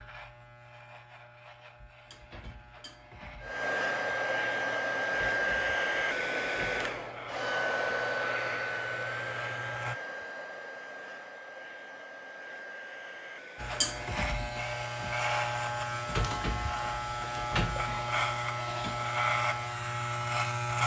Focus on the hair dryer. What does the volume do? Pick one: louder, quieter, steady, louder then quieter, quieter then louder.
quieter.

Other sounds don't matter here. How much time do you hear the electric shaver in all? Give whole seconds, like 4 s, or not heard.
17 s.